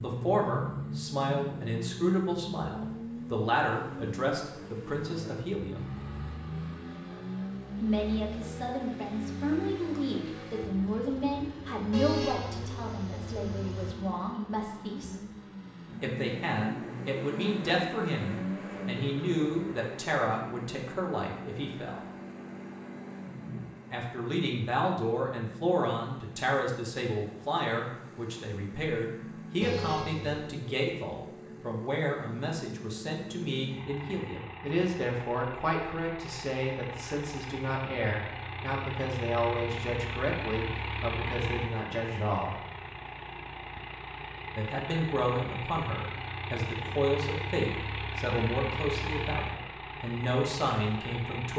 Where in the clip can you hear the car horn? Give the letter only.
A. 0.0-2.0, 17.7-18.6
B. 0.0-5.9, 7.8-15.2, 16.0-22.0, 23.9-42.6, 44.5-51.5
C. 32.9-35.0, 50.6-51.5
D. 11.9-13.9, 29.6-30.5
D.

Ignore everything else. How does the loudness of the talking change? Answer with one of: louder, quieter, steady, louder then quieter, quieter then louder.
steady.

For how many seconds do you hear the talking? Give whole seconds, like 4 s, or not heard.
45 s.